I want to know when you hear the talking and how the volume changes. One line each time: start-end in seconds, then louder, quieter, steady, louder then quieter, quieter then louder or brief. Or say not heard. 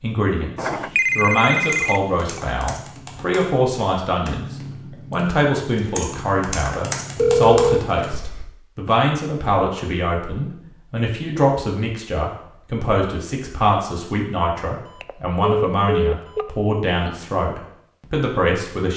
0.0-18.9 steady.